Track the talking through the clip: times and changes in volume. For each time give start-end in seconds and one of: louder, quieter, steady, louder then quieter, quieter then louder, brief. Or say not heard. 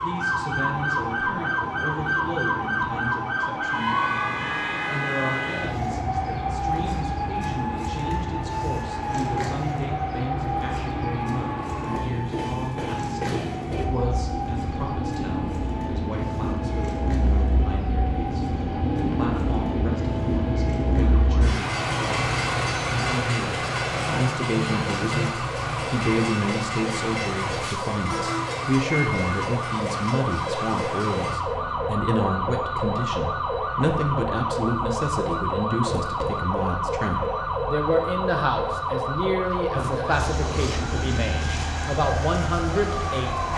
0.0-43.5 louder.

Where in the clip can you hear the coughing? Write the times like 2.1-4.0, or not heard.
not heard.